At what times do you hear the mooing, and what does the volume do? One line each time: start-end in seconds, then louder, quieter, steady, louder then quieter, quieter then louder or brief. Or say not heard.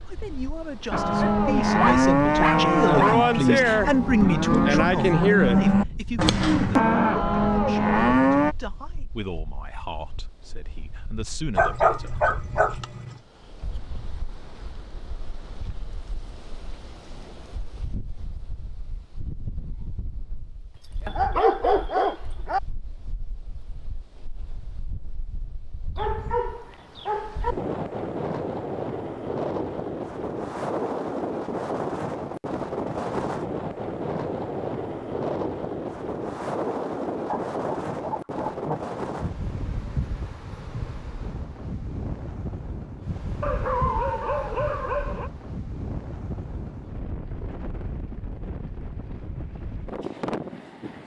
0.9-8.6 steady.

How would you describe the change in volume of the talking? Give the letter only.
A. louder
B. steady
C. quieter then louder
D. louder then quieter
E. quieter
D.